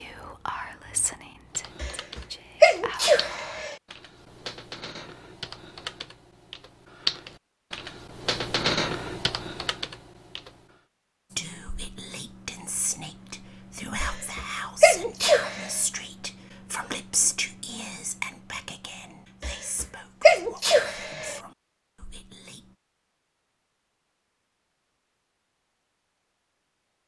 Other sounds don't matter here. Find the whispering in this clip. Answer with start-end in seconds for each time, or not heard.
0.0-3.6, 11.3-22.8.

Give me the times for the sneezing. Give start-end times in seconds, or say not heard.
1.8-3.8, 14.0-15.7, 19.4-21.4.